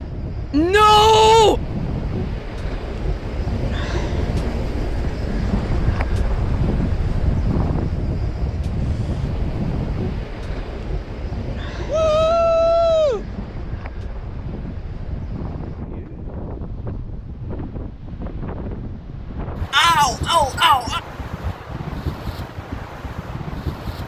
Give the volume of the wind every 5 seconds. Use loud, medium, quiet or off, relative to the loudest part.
loud, loud, medium, medium, medium.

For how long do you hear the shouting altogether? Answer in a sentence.
The shouting can be heard for 4 seconds in total.